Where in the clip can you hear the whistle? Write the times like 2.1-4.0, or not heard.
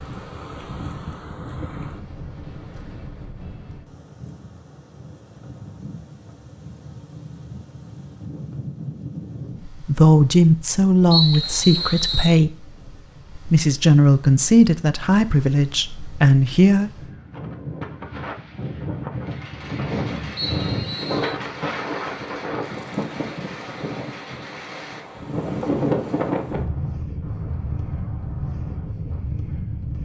11.1-12.4, 20.4-21.4.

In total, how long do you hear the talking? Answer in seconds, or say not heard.
6 s.